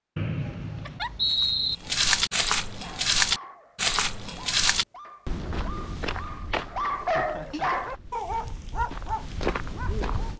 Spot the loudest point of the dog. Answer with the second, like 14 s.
7 s.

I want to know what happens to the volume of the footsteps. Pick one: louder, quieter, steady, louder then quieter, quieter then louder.
quieter then louder.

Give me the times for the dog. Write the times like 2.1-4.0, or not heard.
2.8-10.3.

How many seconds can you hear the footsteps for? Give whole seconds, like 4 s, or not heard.
9 s.